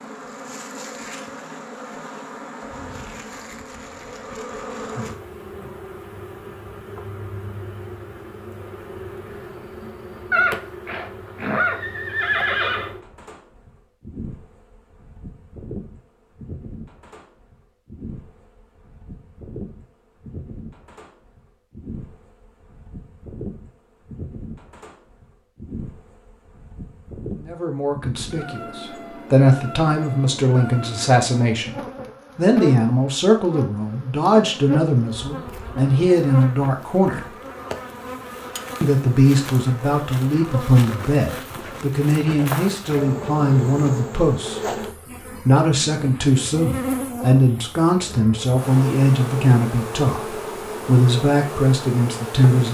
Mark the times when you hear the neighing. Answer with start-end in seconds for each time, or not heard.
10.3-12.9.